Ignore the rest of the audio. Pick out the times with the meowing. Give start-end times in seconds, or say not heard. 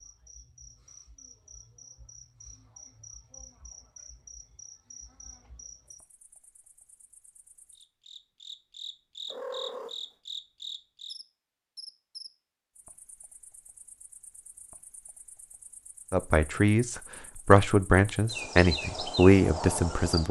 9.3-9.9.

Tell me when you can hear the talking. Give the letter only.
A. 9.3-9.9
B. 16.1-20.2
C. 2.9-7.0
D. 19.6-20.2
B.